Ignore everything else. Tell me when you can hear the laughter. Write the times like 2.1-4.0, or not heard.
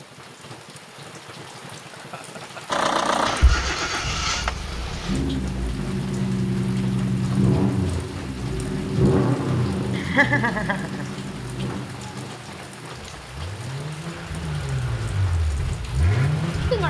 1.9-2.7, 9.9-11.1.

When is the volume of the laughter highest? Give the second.
10 s.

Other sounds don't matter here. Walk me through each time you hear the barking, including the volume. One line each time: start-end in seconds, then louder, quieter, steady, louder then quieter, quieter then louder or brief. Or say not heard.
not heard.